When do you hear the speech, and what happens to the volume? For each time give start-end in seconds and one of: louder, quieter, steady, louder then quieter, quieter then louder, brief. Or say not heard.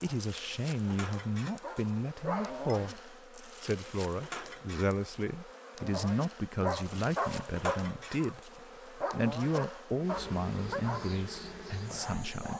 0.0-12.5 steady.